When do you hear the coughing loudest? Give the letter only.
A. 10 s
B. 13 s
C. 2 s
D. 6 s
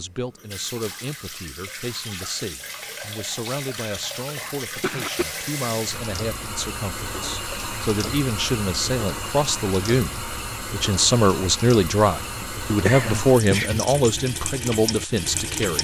B.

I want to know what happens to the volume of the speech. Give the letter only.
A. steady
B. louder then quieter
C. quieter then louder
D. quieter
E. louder
E.